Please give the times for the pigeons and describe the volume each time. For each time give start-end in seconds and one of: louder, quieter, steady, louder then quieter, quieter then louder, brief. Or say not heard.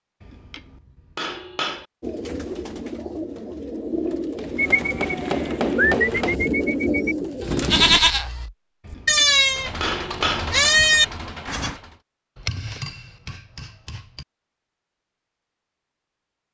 2.0-8.0 louder.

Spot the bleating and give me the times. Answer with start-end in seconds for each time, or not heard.
4.5-11.8.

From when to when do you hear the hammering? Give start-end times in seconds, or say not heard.
0.2-1.9, 4.3-6.4, 8.8-10.5, 12.3-14.2.